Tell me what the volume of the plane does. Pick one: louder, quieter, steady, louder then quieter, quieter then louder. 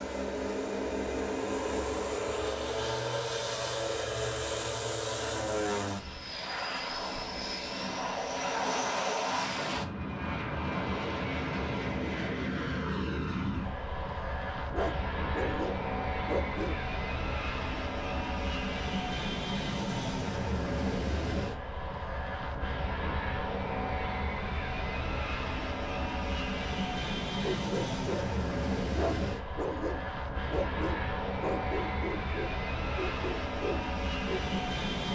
steady.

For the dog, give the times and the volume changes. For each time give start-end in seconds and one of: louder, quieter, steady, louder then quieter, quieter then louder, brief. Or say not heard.
14.7-16.8 brief
27.4-28.3 brief
28.9-34.4 steady.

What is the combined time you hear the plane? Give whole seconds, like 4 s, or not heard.
35 s.